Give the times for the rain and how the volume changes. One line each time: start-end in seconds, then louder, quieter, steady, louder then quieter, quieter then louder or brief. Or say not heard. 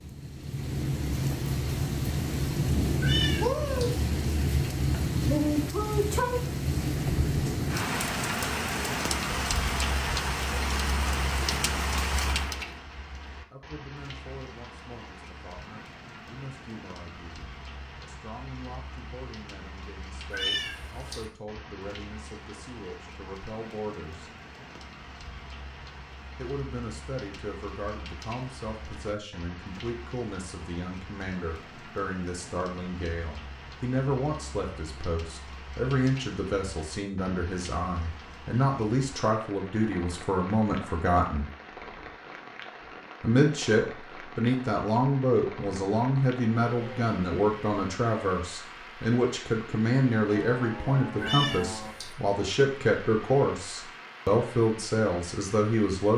0.0-56.1 quieter.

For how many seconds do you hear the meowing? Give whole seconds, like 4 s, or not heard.
3 s.